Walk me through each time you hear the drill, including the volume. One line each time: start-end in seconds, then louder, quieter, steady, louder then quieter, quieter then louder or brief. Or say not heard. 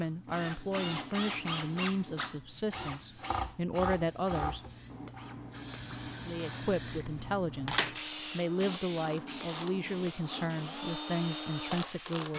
0.0-12.3 quieter then louder.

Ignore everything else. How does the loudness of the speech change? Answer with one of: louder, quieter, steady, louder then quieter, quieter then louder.
steady.